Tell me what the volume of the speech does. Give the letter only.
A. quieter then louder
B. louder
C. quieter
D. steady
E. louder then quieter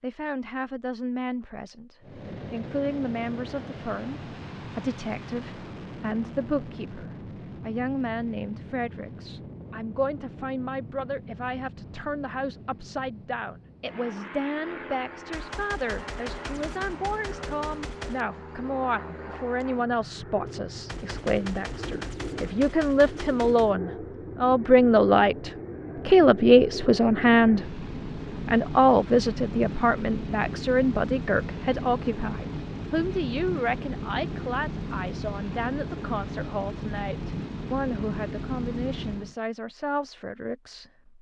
E.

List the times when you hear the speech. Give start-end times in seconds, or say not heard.
0.0-41.1.